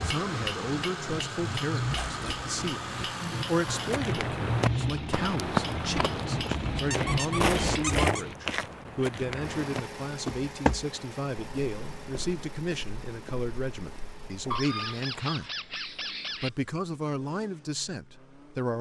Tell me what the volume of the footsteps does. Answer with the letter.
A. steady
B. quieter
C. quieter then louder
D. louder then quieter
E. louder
B.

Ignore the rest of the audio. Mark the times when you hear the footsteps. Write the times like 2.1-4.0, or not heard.
3.6-14.4.